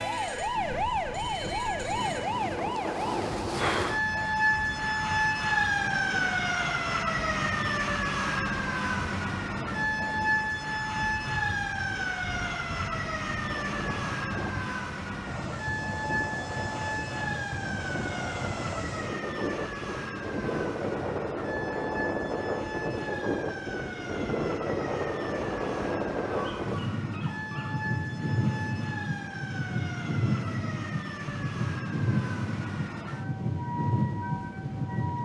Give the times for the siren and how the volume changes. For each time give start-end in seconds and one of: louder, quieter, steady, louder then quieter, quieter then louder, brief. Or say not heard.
0.0-35.1 quieter.